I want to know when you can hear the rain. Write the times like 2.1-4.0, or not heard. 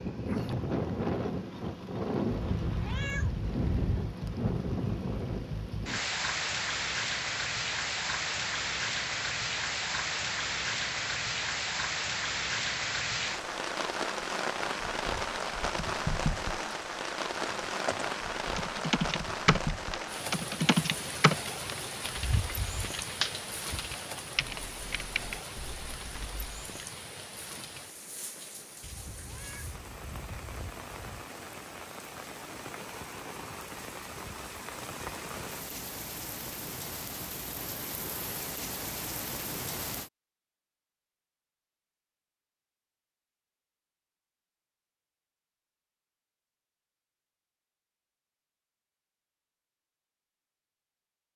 0.0-40.1.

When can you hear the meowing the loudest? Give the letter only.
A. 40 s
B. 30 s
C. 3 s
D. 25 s
C.